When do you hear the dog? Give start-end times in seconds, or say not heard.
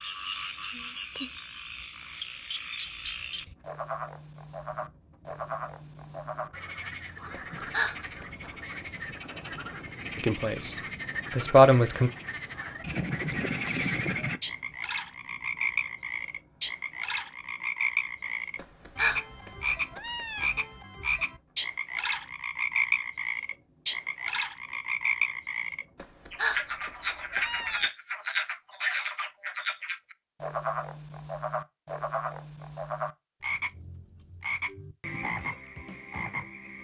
not heard.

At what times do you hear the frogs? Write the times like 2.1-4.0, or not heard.
0.0-36.7.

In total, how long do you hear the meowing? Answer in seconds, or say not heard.
5 s.